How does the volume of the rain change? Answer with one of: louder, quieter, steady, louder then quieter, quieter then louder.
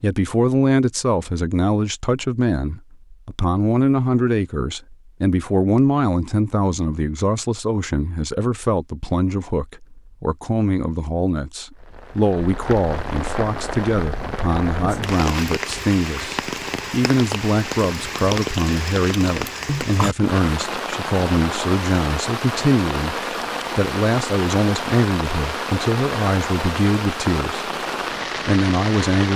steady.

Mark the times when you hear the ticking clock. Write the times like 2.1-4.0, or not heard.
not heard.